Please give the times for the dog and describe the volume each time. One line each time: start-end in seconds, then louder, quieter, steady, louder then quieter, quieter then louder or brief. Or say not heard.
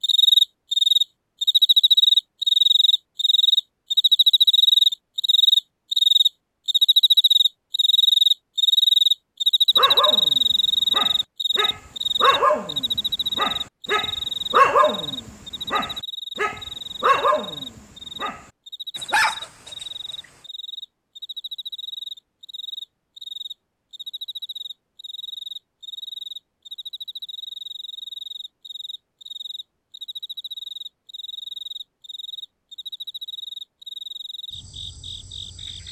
9.8-19.9 louder then quieter.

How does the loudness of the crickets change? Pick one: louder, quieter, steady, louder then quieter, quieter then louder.
quieter.